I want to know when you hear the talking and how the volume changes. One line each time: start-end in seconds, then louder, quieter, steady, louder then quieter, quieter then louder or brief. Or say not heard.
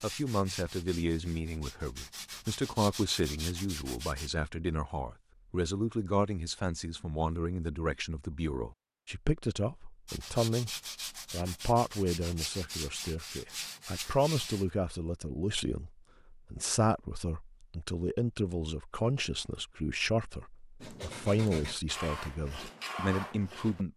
0.0-23.9 steady.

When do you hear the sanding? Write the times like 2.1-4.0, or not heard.
0.0-4.3, 10.1-14.7, 20.8-23.9.